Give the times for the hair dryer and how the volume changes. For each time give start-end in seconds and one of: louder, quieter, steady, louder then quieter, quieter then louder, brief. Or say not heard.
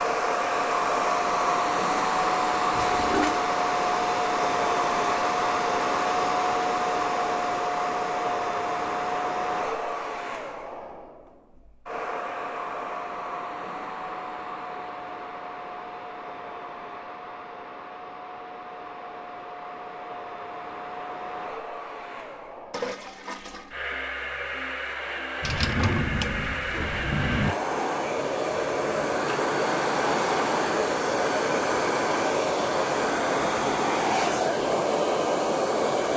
0.0-36.1 quieter then louder.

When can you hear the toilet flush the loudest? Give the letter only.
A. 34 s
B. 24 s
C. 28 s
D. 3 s
D.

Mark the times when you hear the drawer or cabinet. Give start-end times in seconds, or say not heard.
25.4-27.6.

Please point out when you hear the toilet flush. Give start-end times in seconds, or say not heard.
2.7-3.4, 22.7-23.8.